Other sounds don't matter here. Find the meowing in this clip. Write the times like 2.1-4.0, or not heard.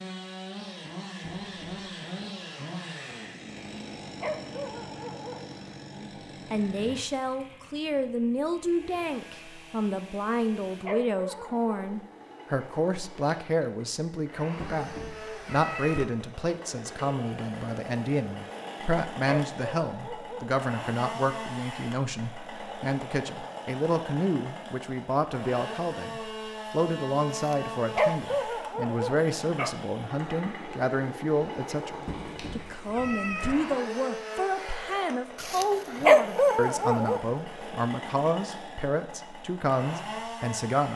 1.2-1.8, 14.6-16.1, 32.0-33.5.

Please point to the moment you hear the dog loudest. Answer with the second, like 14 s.
36 s.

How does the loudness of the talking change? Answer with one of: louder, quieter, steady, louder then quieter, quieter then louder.
steady.